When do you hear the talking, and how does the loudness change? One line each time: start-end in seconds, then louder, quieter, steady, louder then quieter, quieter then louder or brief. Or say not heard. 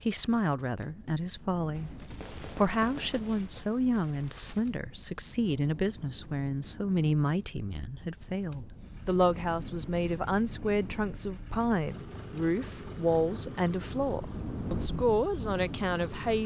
0.0-16.4 steady.